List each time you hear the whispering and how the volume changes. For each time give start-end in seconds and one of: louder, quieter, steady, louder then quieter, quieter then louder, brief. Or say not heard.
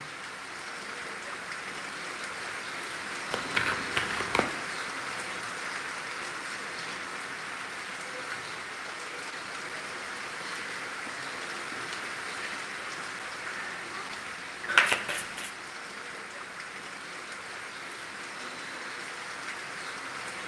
not heard.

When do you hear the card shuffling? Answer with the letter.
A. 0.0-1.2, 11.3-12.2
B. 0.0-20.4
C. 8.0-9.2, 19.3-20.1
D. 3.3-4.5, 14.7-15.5
D.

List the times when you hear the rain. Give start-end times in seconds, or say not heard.
0.0-20.4.